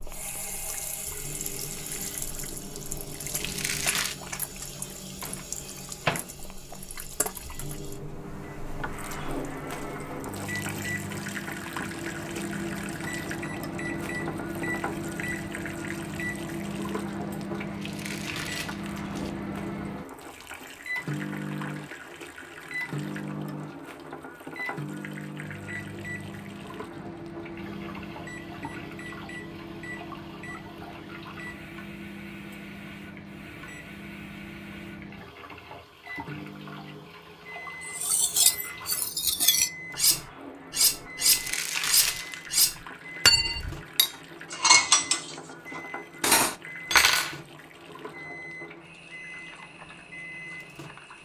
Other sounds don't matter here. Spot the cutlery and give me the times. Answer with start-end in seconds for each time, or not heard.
37.9-47.4.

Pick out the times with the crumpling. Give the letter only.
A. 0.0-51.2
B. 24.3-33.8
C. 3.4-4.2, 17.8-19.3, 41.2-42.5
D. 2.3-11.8
C.